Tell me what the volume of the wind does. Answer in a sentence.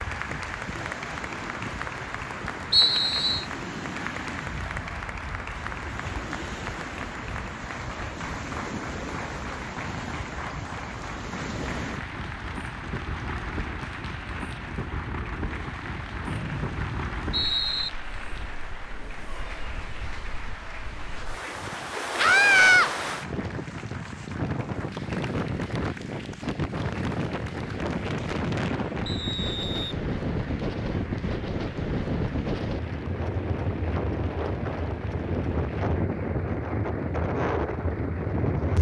The loudness of the wind goes up.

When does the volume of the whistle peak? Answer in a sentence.
The loudest moment of the whistle is at 3 seconds.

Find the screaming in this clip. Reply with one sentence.
You can hear the screaming from 22.1 to 22.9 s.